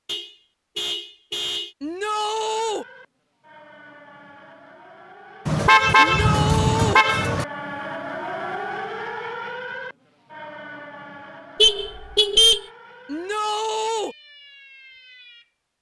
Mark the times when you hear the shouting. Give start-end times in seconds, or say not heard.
1.8-2.9, 6.0-7.0, 13.1-14.2.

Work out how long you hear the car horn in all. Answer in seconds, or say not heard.
5 s.